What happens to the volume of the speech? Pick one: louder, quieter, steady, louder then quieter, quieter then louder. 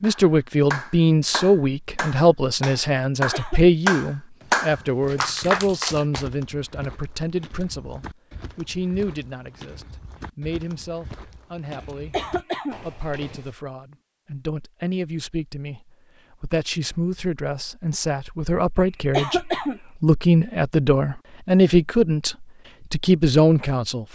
quieter then louder.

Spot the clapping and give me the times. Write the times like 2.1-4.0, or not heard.
0.0-6.2.